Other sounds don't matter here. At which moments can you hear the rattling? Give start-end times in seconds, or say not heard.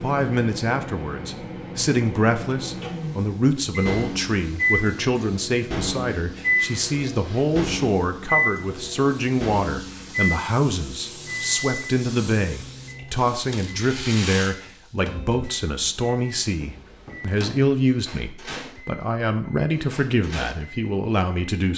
13.5-14.6.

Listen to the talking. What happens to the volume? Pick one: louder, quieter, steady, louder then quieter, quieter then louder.
steady.